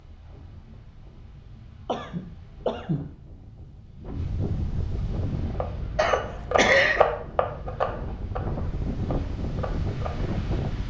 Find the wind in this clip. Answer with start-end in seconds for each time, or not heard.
0.0-10.8.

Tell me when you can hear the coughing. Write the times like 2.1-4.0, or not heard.
1.9-3.1, 6.0-7.0.